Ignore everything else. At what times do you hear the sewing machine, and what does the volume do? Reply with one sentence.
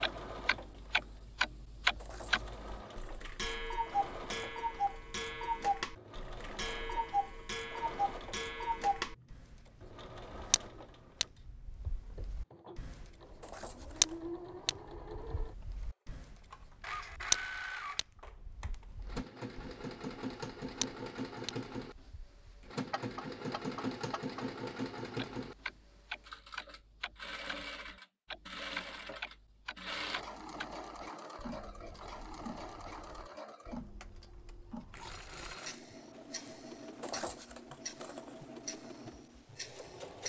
The sewing machine can be heard from 0.0 to 40.2 s, getting louder then quieter.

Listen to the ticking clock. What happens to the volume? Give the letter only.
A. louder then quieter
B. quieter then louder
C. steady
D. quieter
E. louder
D.